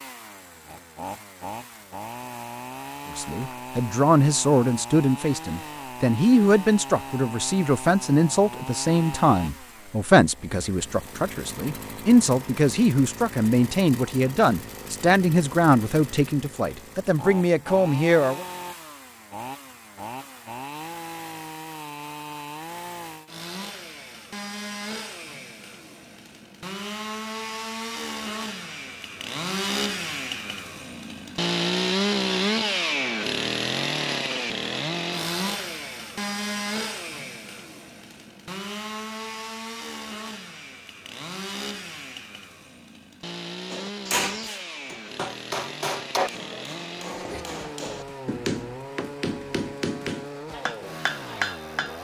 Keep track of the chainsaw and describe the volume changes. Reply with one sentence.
The volume of the chainsaw goes up, then down.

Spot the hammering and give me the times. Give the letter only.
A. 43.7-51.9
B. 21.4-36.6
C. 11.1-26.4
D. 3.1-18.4
A.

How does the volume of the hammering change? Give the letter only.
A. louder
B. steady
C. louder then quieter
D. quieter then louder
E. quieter
B.